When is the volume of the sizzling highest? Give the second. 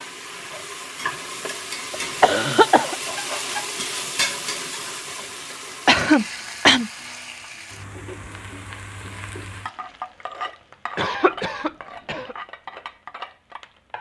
4 s.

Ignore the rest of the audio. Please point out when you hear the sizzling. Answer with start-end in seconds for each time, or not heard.
0.0-13.9.